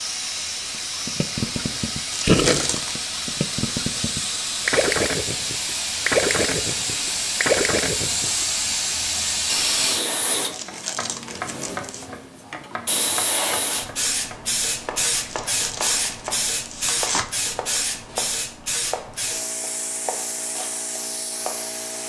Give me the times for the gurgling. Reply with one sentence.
The gurgling can be heard from 0.8 to 8.4 s.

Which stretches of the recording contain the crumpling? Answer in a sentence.
The crumpling can be heard from 2.1 to 3.1 s, from 10.5 to 12.1 s and from 15.2 to 17.2 s.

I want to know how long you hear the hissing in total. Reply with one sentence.
The hissing can be heard for 22 seconds in total.